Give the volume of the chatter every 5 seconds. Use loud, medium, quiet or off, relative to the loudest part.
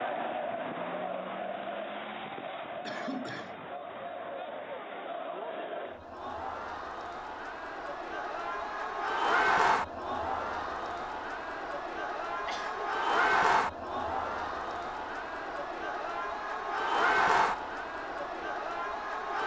medium, loud, loud, loud.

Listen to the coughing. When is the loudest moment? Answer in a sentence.
The loudest moment of the coughing is at 3 seconds.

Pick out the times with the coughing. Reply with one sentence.
The coughing can be heard from 2.9 to 3.7 s and from 12.2 to 12.9 s.